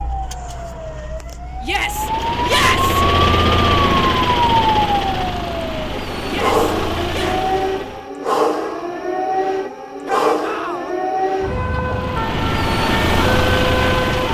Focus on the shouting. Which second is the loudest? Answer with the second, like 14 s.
3 s.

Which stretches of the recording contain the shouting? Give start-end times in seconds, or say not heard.
1.6-3.0, 6.2-7.4, 10.1-10.9.